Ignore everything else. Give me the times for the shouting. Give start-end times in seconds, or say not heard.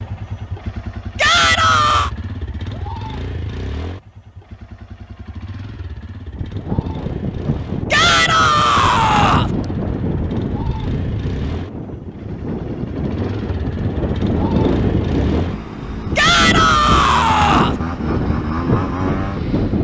1.1-2.1, 7.9-9.5, 16.1-17.8.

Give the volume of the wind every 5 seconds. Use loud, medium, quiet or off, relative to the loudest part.
off, loud, loud, loud.